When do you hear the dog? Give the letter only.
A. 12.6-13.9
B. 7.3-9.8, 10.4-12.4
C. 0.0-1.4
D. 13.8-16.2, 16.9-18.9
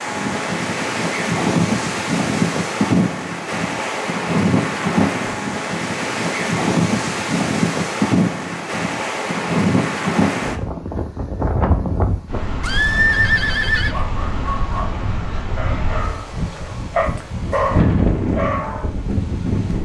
D.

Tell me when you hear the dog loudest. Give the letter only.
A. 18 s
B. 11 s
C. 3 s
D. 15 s
A.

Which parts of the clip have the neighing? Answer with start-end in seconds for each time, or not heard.
12.6-13.9.